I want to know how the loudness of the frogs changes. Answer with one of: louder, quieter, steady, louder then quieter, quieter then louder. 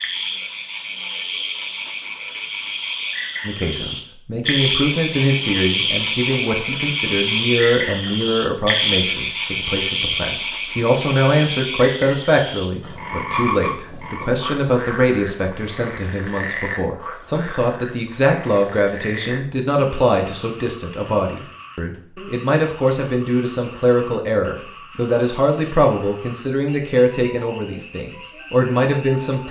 quieter.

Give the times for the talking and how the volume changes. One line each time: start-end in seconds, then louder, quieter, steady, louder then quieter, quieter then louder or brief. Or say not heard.
3.5-29.4 steady.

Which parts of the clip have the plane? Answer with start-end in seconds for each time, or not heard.
not heard.